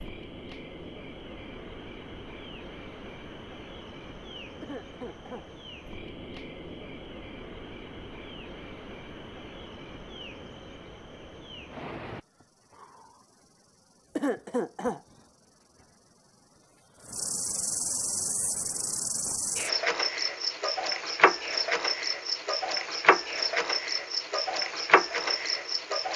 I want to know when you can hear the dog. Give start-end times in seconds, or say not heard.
not heard.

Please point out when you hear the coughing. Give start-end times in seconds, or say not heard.
4.6-5.5, 14.2-15.0.